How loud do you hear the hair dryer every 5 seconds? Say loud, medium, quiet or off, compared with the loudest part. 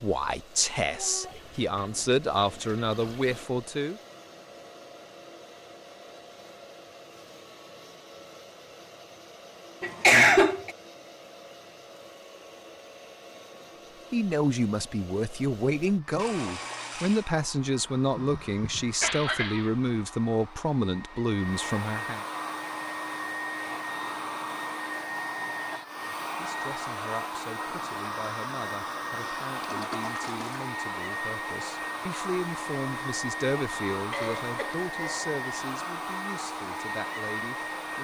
quiet, quiet, quiet, quiet, loud, loud, loud, loud.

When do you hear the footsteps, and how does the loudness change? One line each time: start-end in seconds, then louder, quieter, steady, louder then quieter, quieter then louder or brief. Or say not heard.
not heard.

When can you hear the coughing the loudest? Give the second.
10 s.